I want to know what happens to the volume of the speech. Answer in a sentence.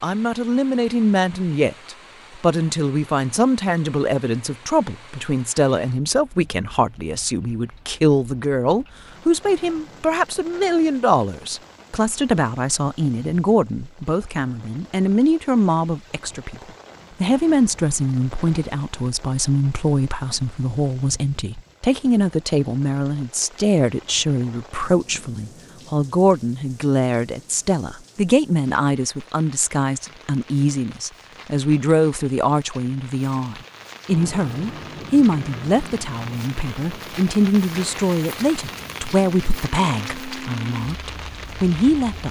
The volume of the speech stays about the same.